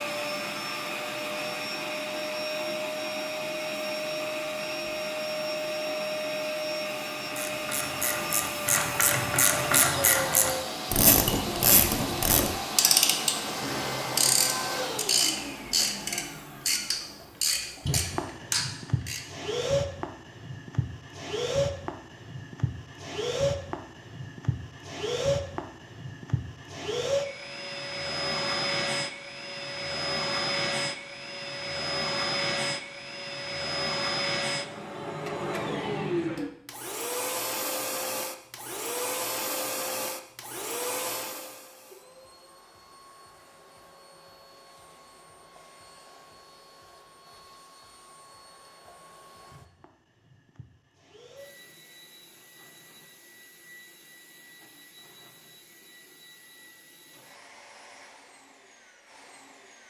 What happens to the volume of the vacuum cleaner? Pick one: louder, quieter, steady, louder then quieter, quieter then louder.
quieter.